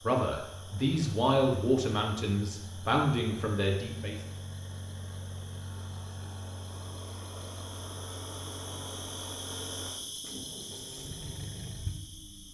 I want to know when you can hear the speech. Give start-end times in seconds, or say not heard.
0.0-4.2.